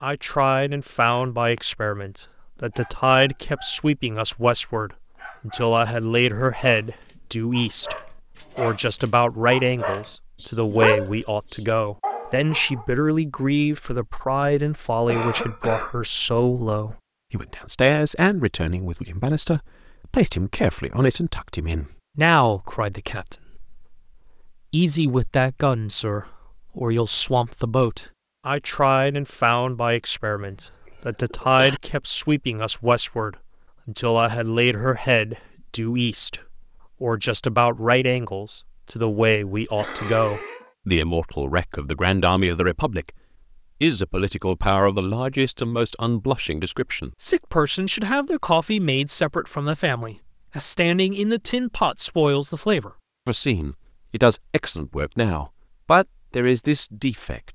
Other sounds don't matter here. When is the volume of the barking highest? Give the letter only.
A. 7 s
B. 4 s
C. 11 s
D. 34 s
C.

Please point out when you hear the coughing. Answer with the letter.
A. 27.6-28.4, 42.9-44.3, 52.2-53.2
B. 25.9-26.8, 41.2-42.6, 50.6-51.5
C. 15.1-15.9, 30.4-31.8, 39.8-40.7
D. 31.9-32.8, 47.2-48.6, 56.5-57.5
C.